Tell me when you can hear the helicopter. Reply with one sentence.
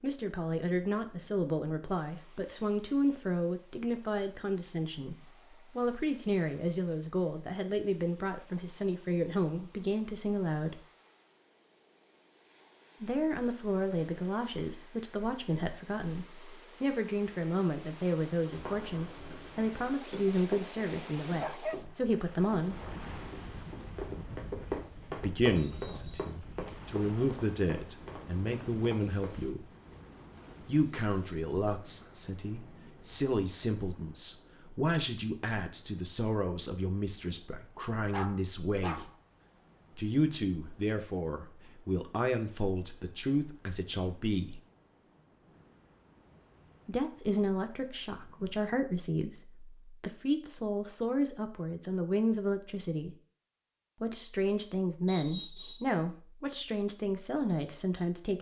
You can't hear the helicopter here.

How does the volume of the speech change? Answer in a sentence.
The loudness of the speech stays about the same.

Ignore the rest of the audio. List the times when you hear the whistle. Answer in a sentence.
The whistle can be heard from 25.6 to 26.4 s and from 55.0 to 55.9 s.